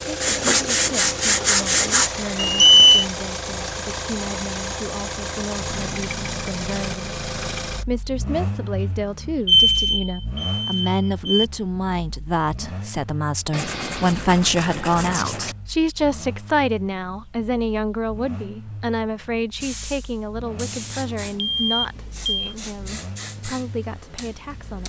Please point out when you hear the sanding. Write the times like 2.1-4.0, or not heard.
0.2-2.1, 13.5-15.6.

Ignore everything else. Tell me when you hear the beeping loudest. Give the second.
3 s.